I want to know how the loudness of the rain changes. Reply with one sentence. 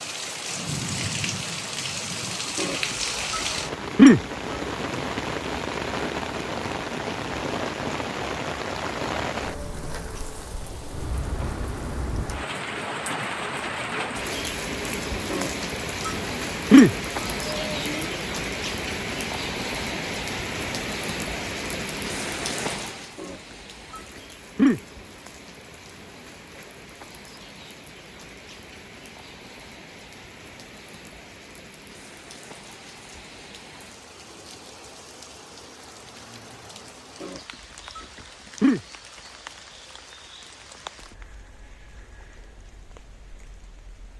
The loudness of the rain goes down.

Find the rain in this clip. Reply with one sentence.
You can hear the rain from 0.0 to 44.1 s.